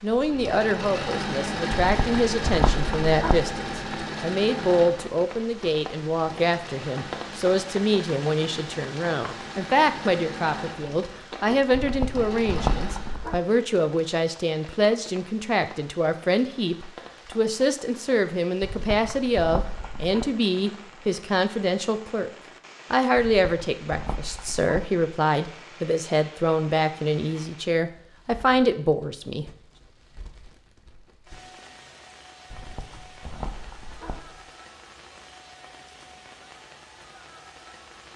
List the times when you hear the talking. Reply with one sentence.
You can hear the talking from 0.0 to 22.3 s and from 22.9 to 29.4 s.